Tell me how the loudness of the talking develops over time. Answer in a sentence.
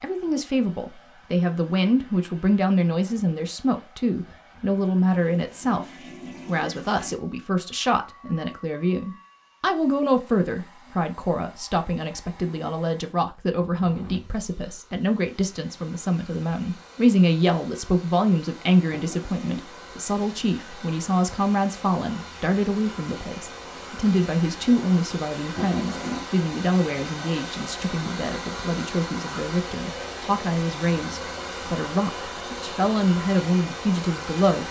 The volume of the talking stays about the same.